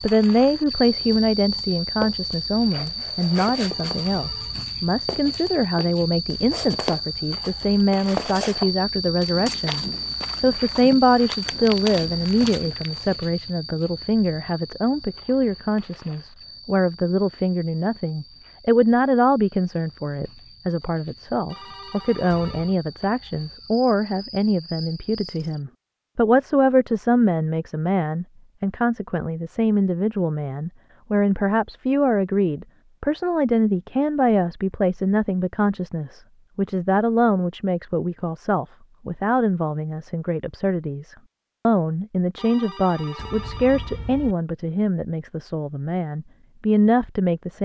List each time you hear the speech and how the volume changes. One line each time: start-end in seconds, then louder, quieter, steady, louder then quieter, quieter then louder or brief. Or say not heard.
0.0-47.5 steady.